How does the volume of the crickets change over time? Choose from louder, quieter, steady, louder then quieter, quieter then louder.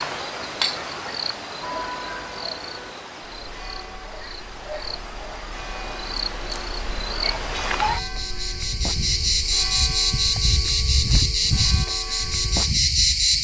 quieter then louder.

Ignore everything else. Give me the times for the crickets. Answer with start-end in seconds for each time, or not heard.
0.0-13.3.